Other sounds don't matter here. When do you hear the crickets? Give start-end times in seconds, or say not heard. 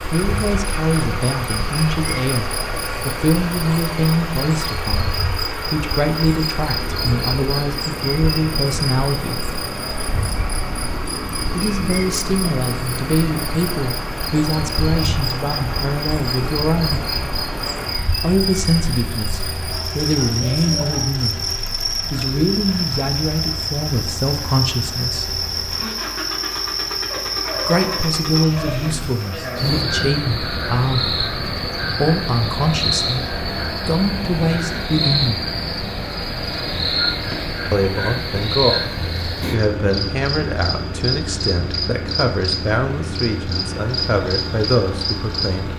0.0-45.7.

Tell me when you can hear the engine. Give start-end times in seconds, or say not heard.
0.0-45.7.